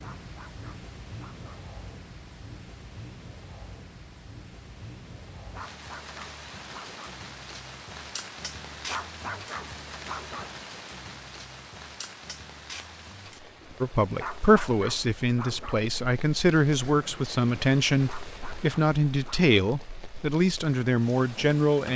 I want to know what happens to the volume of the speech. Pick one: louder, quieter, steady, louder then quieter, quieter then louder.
steady.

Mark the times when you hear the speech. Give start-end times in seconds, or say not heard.
13.8-21.9.